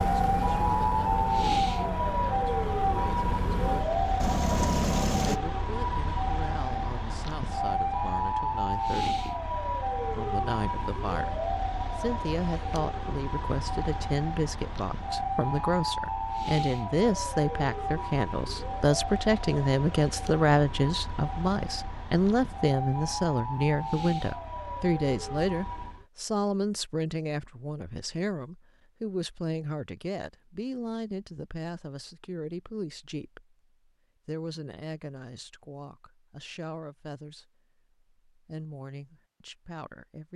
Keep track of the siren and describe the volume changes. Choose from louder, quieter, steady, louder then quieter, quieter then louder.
quieter.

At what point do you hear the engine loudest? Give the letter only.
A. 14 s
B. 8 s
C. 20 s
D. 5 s
D.